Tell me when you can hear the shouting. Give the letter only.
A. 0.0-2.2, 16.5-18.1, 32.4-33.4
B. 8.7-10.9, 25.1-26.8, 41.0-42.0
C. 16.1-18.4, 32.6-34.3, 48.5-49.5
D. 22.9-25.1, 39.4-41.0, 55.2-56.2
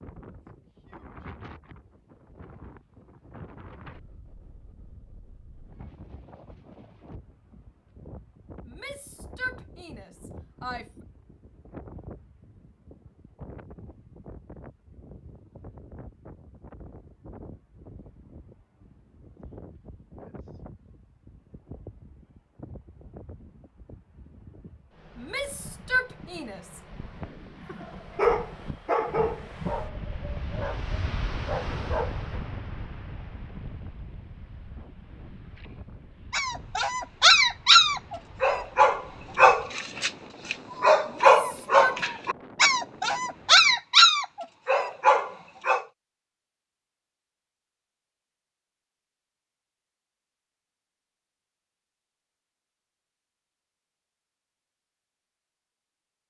B.